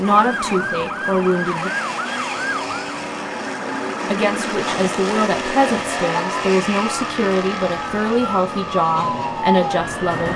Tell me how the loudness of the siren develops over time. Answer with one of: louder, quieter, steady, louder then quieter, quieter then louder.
quieter then louder.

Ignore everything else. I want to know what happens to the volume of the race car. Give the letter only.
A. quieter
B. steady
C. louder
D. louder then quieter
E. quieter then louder
D.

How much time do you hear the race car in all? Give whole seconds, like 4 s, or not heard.
10 s.